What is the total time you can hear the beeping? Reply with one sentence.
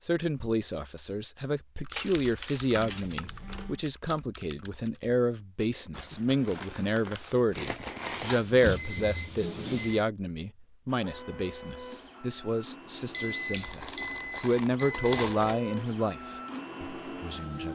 The beeping can be heard for 5 seconds in total.